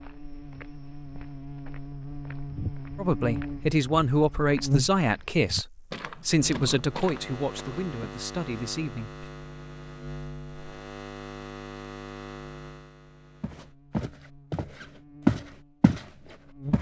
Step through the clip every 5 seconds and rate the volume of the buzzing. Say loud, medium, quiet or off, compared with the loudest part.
loud, medium, medium, medium.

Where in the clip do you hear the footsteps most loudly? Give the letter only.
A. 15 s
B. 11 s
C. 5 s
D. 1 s
A.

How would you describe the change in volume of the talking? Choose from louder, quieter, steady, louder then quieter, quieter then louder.
quieter.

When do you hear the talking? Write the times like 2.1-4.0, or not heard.
3.0-9.2.